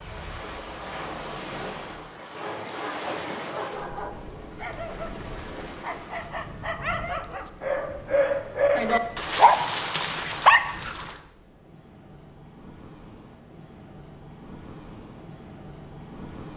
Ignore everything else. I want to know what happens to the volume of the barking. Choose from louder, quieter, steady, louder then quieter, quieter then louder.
louder.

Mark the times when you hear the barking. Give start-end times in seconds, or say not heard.
2.2-11.2.